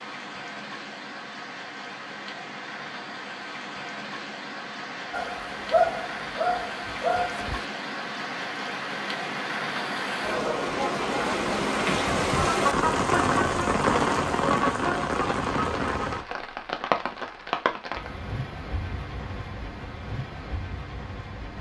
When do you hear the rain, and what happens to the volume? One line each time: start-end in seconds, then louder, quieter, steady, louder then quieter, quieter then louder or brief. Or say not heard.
0.0-21.5 louder then quieter.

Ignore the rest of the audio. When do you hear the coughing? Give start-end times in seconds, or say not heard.
not heard.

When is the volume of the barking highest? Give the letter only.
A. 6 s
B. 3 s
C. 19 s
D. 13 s
A.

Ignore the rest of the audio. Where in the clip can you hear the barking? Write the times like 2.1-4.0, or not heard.
5.1-7.7.